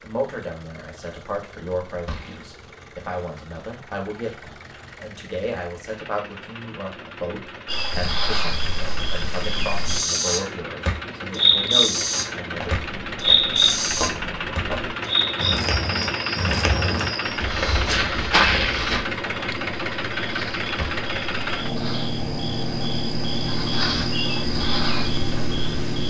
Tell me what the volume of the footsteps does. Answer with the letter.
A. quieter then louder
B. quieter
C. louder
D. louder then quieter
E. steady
C.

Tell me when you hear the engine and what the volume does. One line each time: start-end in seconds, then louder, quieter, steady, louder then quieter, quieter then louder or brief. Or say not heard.
0.0-26.0 louder.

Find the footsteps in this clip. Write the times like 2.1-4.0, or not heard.
12.5-19.1.